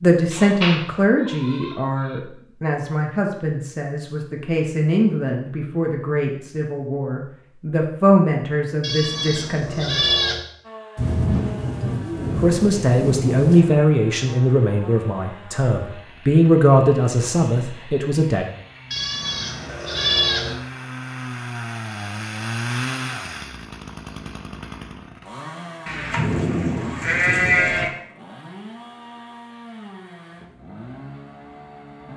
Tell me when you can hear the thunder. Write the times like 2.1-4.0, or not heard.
10.9-13.6, 25.9-27.9.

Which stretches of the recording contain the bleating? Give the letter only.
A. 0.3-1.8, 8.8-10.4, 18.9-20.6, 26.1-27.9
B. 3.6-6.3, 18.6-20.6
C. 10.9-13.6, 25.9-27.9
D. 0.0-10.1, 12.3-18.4
A.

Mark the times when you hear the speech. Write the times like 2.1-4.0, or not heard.
0.0-10.1, 12.3-18.4.